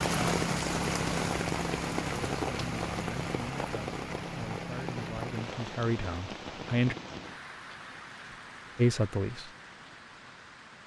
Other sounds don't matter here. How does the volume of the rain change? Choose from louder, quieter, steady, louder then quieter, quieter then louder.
quieter.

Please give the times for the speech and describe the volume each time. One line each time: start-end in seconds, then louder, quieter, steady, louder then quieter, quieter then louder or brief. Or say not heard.
2.0-7.0 louder
8.8-9.5 brief.